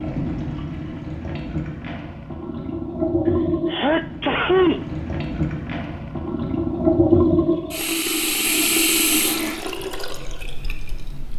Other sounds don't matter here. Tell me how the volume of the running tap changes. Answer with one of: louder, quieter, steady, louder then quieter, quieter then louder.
louder then quieter.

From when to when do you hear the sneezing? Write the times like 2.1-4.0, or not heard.
3.7-4.8.